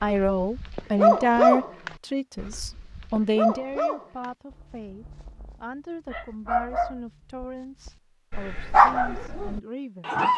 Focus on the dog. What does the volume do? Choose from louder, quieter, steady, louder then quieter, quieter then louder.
quieter then louder.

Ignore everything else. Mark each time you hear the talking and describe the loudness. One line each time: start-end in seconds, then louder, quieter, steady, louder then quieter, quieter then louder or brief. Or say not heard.
0.0-10.2 quieter.